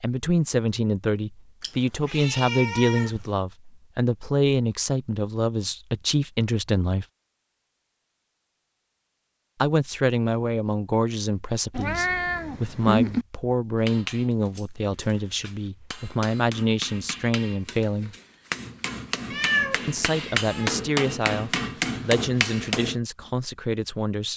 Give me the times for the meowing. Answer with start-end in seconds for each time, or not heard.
1.6-3.2, 11.7-13.2, 19.3-20.8.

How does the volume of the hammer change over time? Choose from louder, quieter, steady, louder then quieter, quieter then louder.
louder.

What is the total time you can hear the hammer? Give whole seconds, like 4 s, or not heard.
9 s.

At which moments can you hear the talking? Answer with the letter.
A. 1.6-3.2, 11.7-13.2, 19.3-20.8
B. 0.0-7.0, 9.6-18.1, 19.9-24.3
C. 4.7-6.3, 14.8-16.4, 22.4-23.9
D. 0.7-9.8
B.